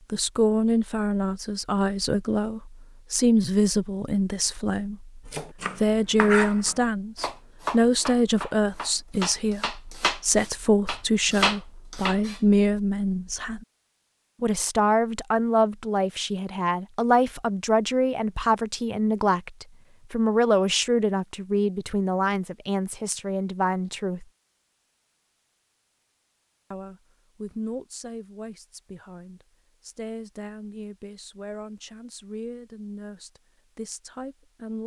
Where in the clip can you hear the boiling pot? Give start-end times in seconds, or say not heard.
not heard.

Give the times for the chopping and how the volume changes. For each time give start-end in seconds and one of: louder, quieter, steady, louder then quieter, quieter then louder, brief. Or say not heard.
5.2-12.4 quieter then louder.